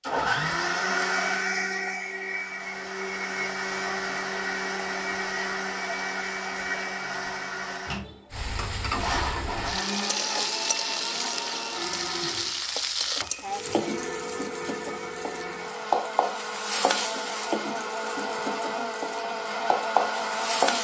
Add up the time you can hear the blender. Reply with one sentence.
You can hear the blender for 21 seconds altogether.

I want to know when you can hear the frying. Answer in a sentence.
You can hear the frying from 8.3 to 20.7 s.